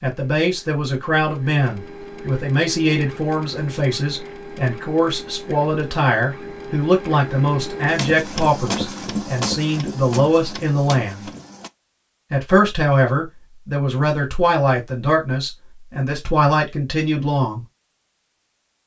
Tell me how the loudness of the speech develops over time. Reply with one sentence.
The loudness of the speech stays about the same.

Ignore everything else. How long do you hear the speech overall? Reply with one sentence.
The speech can be heard for 17 seconds in total.